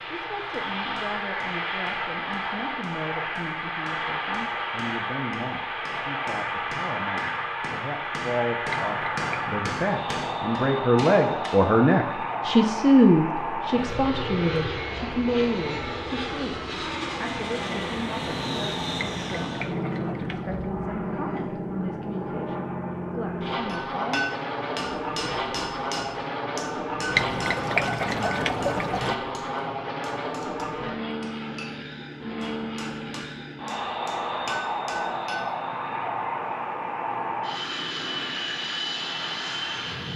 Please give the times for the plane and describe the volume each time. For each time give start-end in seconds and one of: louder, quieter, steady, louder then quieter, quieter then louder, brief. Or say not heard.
0.0-40.1 steady.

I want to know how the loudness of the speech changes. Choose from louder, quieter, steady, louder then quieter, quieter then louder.
louder then quieter.